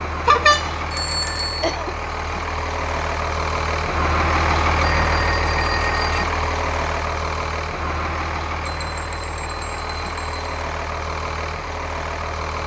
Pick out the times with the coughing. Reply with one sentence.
You can hear the coughing from 1.4 to 1.9 s.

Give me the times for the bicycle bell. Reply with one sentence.
The bicycle bell can be heard from 0.2 to 1.8 s, from 4.8 to 6.2 s and from 8.7 to 10.5 s.